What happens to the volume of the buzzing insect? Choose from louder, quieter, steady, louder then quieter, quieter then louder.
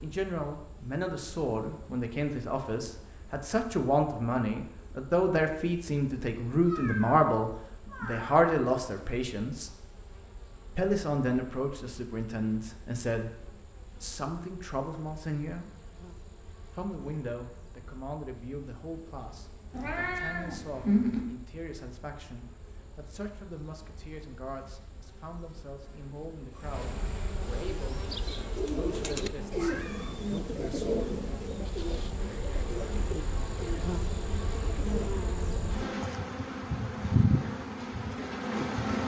louder.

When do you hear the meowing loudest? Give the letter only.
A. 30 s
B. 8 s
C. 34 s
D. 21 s
D.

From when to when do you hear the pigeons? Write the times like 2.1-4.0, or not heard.
27.6-35.9.